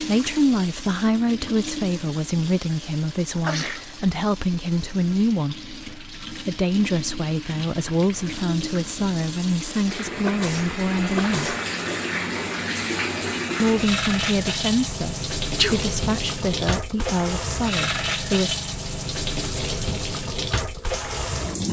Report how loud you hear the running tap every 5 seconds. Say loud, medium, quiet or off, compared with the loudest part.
medium, medium, loud, loud, loud.